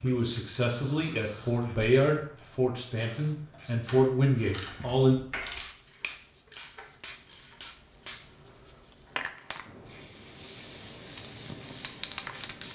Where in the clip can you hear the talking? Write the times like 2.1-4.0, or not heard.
0.0-5.2.